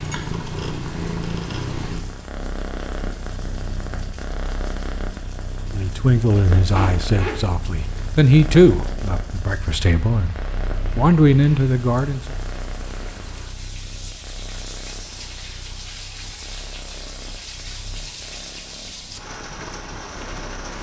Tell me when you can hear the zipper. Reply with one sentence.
You can hear the zipper from 6.8 to 8.1 s.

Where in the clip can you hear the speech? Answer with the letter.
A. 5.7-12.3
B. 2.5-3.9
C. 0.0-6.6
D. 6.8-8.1
A.